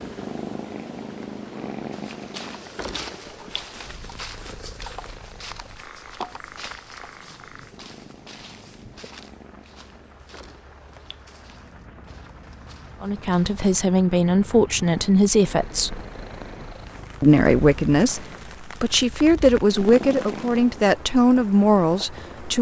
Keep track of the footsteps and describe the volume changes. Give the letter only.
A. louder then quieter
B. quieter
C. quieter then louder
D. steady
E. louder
B.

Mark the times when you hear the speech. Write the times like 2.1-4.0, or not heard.
13.0-16.1, 17.2-22.5.